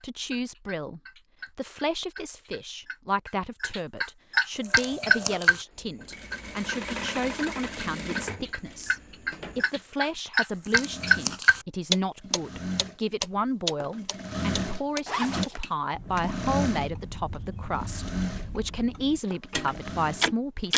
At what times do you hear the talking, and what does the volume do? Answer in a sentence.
You can hear the talking from 0.0 to 20.7 s, at a steady volume.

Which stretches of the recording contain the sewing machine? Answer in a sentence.
You can hear the sewing machine from 4.5 to 20.7 s.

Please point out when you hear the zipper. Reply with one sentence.
The zipper can be heard from 15.1 to 15.7 s.